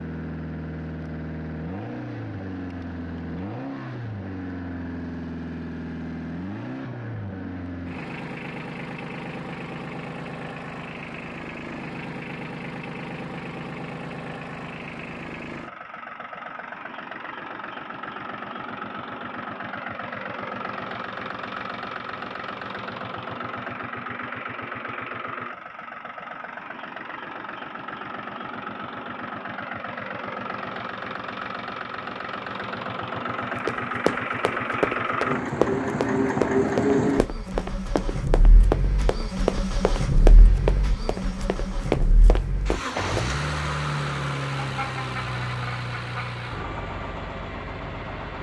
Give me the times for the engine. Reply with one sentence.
You can hear the engine from 0.0 to 48.3 s.